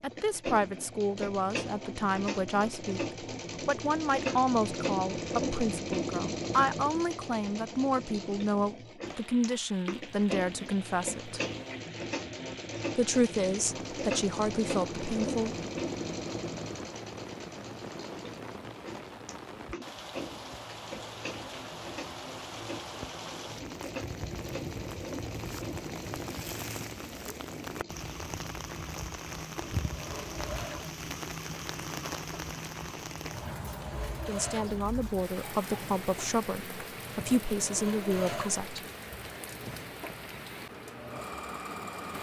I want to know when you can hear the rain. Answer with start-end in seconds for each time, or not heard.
9.1-42.1.